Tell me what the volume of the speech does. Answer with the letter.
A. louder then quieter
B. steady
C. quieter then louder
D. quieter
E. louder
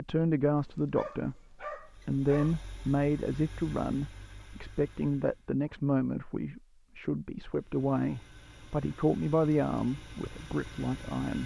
B.